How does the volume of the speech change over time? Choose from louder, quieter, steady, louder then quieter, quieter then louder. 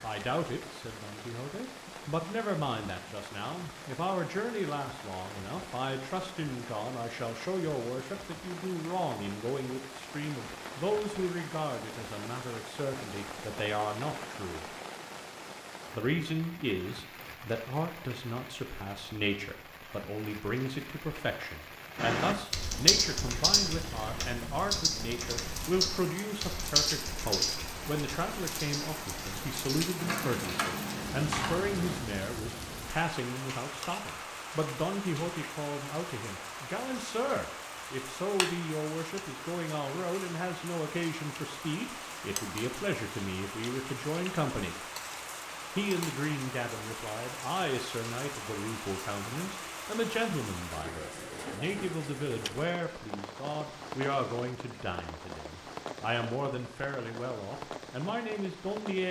steady.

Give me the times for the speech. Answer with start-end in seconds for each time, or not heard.
0.0-14.7, 15.9-44.8, 45.8-59.0.